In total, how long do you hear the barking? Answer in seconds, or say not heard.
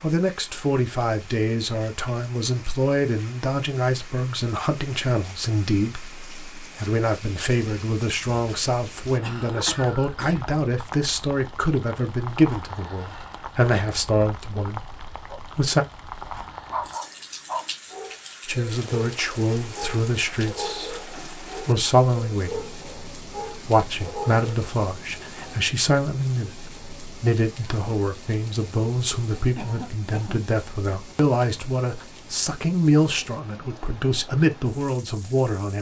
8 s.